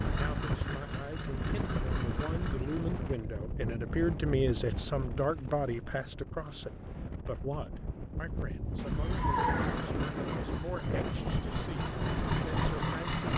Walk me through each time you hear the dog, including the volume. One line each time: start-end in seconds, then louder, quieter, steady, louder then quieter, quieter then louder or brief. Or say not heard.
not heard.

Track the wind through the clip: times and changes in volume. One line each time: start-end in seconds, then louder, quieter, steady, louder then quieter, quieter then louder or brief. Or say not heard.
0.0-13.3 quieter then louder.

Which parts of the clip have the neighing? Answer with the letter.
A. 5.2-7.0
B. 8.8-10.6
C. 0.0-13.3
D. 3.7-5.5
B.